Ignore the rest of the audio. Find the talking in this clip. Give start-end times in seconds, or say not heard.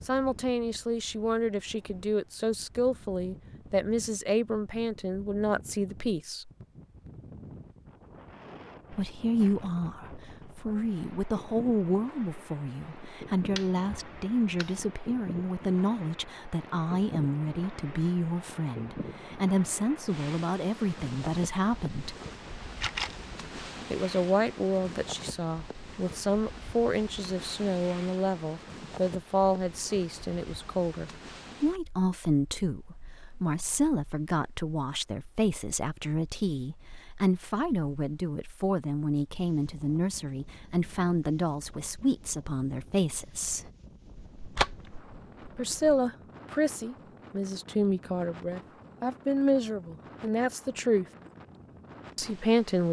0.1-6.5, 8.9-22.1, 23.9-43.7, 45.5-51.0, 52.1-52.8.